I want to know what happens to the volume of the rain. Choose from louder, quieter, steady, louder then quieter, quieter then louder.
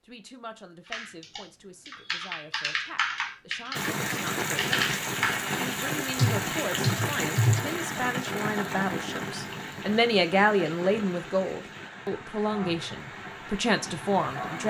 quieter.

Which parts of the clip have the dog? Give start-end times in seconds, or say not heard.
not heard.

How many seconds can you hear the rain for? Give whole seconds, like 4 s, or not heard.
11 s.